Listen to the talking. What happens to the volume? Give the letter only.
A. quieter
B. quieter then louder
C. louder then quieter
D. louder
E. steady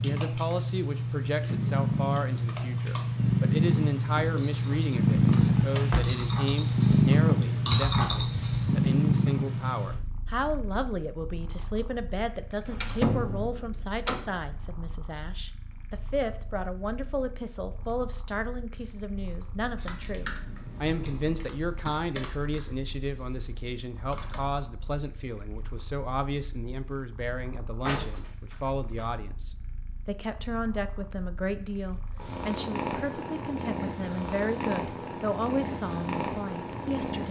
E.